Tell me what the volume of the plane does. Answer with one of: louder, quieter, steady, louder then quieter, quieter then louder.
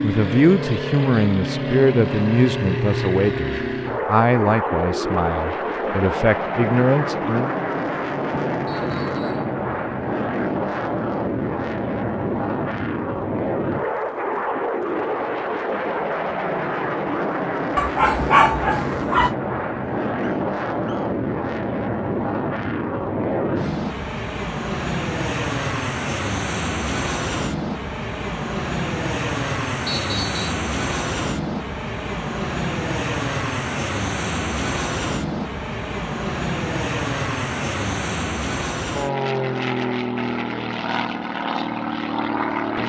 steady.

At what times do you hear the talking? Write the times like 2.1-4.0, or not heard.
0.0-7.5.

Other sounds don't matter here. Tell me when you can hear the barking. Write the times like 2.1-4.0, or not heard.
17.8-19.4.